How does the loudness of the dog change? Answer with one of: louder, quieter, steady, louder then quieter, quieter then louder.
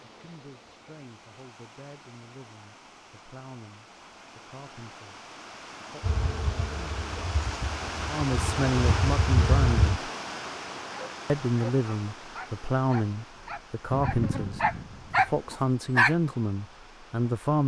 louder.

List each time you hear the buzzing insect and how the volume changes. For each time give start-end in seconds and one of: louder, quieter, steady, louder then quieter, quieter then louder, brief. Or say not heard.
6.0-10.0 quieter then louder
13.9-15.6 brief.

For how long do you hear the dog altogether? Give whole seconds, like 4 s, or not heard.
5 s.